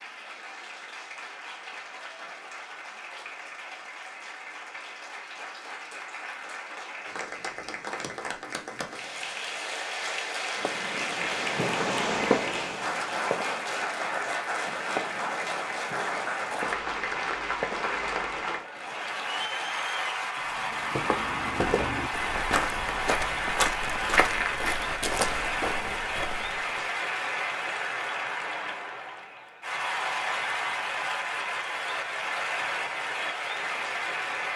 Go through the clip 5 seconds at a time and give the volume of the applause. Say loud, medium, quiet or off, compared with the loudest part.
medium, medium, loud, loud, loud, loud, loud.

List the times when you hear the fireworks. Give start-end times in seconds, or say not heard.
10.6-18.6.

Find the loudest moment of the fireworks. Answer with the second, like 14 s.
12 s.